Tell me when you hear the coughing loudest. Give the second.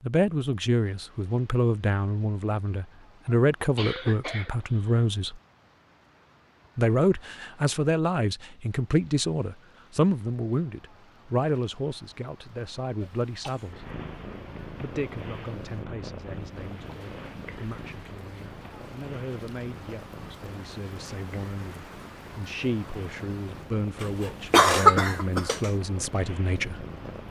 25 s.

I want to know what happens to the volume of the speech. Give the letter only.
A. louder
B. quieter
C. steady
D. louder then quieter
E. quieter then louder
E.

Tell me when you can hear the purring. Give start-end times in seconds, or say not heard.
13.7-27.2.